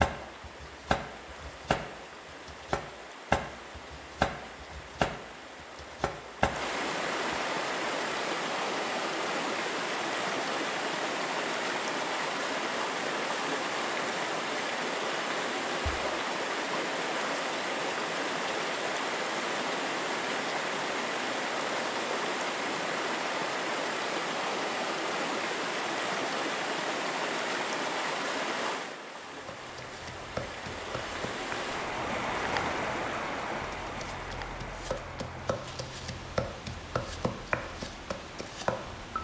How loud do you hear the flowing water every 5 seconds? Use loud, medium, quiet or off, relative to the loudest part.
quiet, loud, loud, loud, loud, loud, loud, quiet.